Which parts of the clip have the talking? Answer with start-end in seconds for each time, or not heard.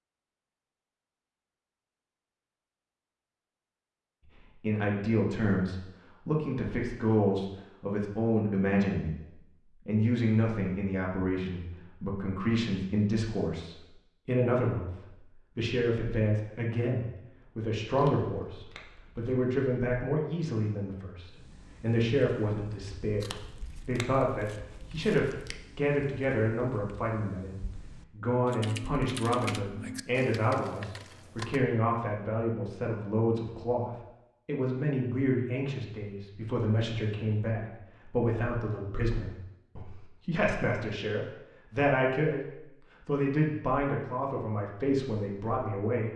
4.2-46.1.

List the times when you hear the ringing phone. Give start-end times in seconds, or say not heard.
not heard.